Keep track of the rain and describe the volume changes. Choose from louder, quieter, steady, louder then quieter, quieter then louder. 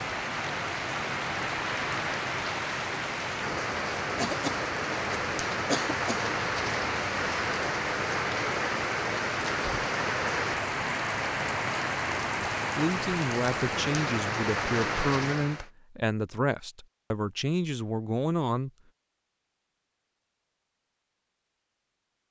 steady.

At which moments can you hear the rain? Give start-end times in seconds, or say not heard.
0.0-15.7.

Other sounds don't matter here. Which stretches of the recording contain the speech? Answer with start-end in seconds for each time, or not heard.
12.8-18.7.